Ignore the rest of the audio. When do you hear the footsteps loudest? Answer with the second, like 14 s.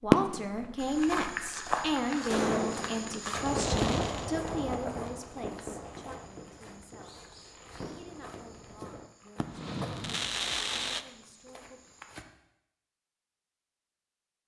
2 s.